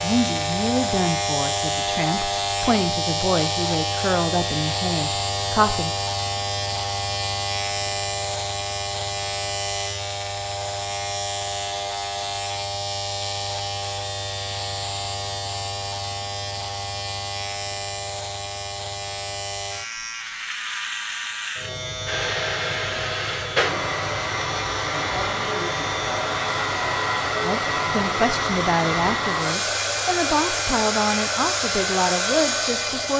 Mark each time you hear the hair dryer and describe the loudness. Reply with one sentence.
The hair dryer can be heard from 22.1 to 33.1 s, at a steady volume.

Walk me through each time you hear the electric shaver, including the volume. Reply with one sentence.
The electric shaver can be heard from 0.0 to 33.1 s, getting quieter.